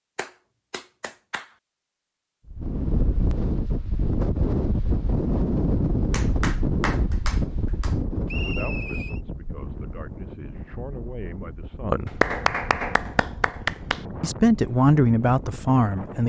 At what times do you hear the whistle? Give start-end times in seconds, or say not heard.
8.2-9.2.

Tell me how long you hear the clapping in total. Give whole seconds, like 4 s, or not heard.
5 s.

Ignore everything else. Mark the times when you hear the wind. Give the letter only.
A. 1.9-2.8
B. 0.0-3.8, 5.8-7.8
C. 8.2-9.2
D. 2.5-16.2
D.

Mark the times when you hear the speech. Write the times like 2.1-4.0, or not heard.
8.3-12.2, 14.2-16.2.